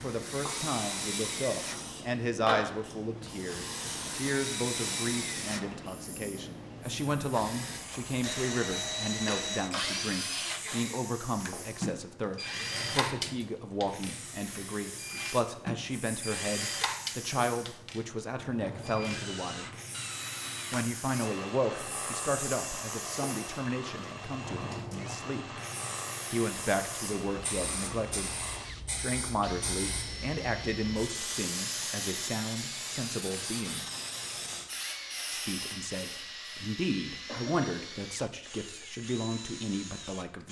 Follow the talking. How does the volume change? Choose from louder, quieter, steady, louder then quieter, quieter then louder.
steady.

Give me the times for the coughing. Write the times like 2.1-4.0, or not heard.
10.6-11.0, 37.2-37.9.